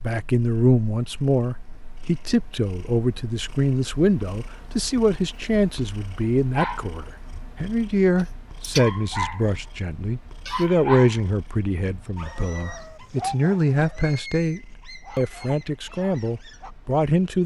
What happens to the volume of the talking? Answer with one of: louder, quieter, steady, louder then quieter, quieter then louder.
steady.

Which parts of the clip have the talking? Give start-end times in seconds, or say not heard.
0.0-17.4.